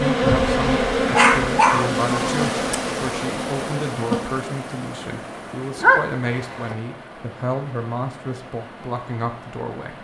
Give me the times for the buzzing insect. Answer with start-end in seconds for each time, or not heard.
0.0-4.4.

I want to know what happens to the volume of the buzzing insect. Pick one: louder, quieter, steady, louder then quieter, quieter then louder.
quieter.